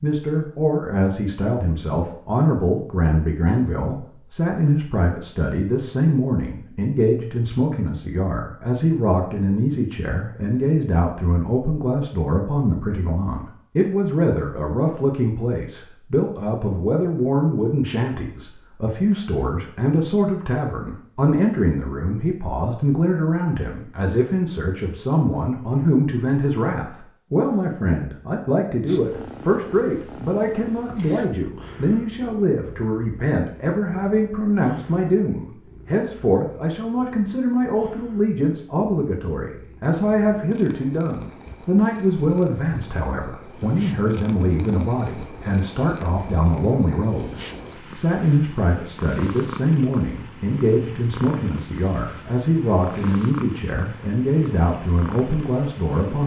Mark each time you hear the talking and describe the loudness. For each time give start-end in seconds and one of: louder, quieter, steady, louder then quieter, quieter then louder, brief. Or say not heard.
0.0-47.4 steady
48.0-56.2 steady.